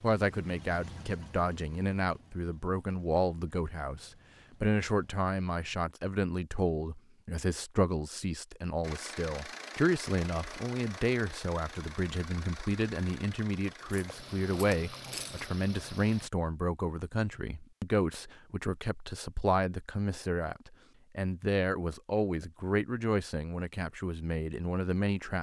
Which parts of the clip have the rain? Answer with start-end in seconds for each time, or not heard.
not heard.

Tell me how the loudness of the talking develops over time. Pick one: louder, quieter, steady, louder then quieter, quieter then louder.
steady.